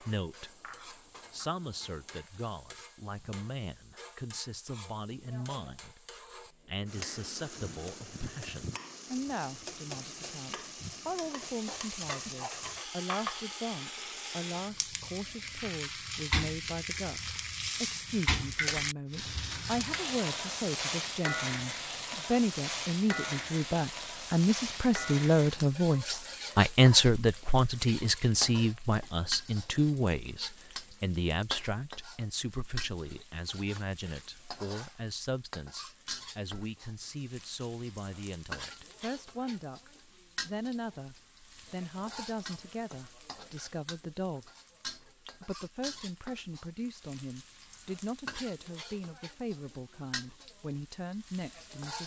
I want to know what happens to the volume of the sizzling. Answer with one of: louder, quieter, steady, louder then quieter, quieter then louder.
louder then quieter.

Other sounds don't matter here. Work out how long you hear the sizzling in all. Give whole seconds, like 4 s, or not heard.
52 s.